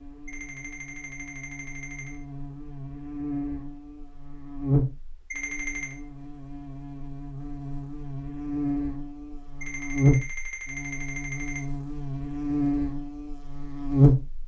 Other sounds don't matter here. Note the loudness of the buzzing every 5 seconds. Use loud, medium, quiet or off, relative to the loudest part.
medium, medium, loud.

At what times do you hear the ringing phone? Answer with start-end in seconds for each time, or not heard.
0.2-2.2, 5.3-6.0, 9.6-11.6.